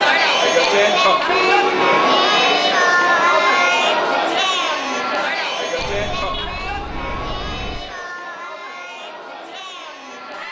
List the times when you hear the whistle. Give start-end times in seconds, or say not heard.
not heard.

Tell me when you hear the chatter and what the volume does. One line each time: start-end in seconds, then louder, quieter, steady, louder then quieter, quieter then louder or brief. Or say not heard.
0.0-10.4 quieter.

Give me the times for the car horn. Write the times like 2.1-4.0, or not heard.
1.2-1.9, 5.8-7.8.